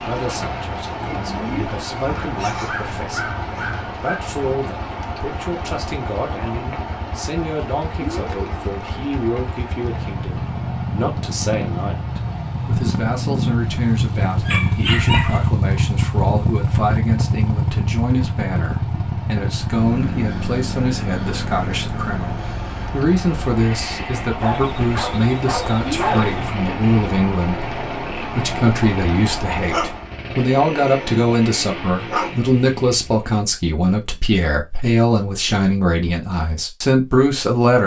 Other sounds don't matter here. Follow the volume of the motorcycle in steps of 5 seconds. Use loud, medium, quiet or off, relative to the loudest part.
quiet, quiet, loud, loud, medium, medium, medium, off.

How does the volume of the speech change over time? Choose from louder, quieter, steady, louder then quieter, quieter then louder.
louder.